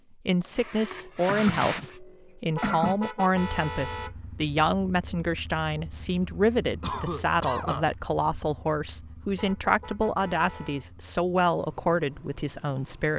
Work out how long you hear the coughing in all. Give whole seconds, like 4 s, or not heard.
4 s.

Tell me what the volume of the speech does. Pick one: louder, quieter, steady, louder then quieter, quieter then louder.
steady.